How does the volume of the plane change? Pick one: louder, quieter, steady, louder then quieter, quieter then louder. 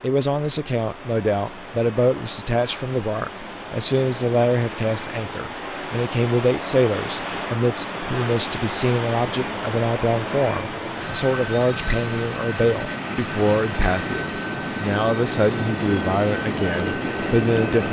louder.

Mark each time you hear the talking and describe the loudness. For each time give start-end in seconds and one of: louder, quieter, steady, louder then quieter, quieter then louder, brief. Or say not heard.
0.0-17.8 steady.